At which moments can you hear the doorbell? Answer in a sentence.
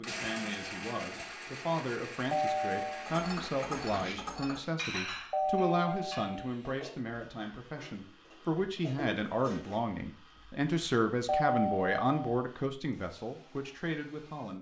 The doorbell can be heard from 2.3 to 3.1 s, from 5.3 to 6.5 s and from 11.2 to 12.4 s.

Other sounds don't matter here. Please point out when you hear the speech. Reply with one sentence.
You can hear the speech from 0.0 to 14.5 s.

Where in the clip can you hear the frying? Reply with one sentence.
You can't hear the frying here.